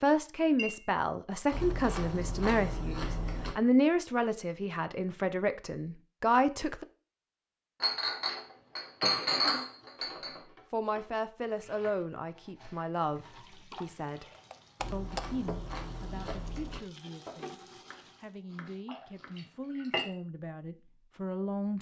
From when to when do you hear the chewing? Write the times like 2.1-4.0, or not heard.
1.5-3.5, 14.8-16.8.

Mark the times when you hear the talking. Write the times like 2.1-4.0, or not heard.
0.0-6.8, 10.7-14.2, 14.9-17.6, 18.2-21.7.